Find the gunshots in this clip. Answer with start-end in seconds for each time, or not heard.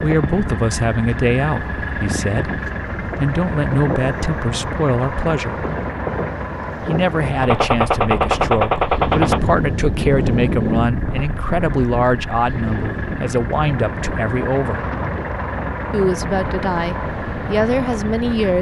7.4-9.4.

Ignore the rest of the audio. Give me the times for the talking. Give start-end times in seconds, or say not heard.
0.0-5.7, 6.8-14.8, 15.9-18.5.